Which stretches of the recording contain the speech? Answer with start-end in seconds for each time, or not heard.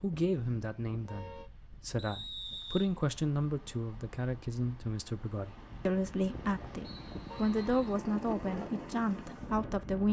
0.0-10.0.